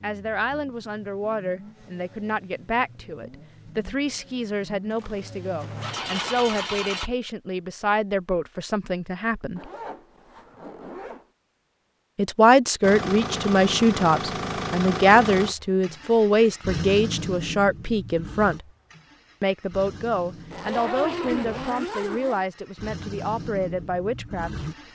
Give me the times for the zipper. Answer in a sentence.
You can hear the zipper from 4.9 to 6.4 s, from 9.6 to 11.2 s and from 20.4 to 22.4 s.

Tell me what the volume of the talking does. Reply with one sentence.
The volume of the talking goes up, then down.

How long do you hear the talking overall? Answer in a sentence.
You can hear the talking for 22 seconds altogether.